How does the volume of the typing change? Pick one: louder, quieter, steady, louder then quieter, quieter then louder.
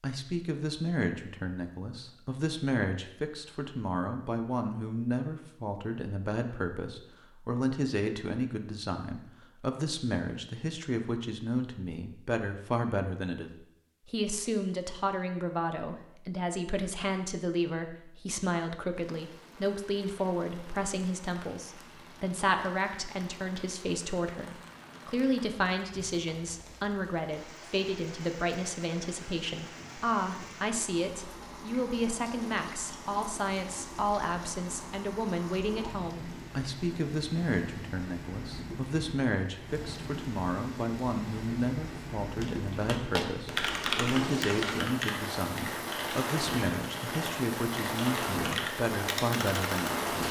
quieter then louder.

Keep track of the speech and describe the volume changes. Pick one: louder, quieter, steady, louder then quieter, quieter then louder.
steady.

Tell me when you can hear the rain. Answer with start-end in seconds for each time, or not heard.
18.9-50.2.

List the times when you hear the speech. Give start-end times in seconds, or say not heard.
0.0-50.2.